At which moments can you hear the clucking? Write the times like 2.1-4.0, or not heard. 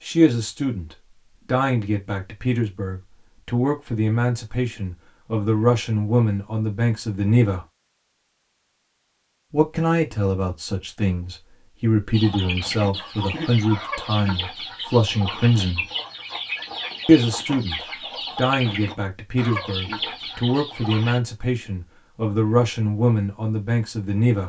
12.1-21.2.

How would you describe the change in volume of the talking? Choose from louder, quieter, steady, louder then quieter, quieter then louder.
steady.